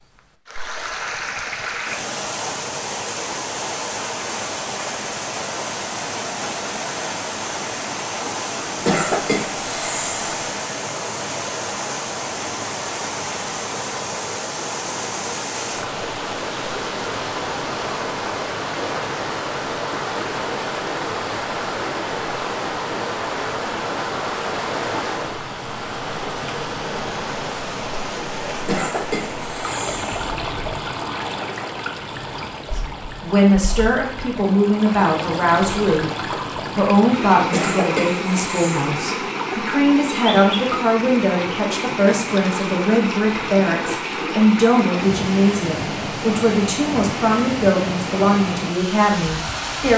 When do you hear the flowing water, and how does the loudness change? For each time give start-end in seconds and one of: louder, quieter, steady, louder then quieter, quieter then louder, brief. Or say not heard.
0.0-49.9 steady.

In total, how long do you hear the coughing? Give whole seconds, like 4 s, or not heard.
5 s.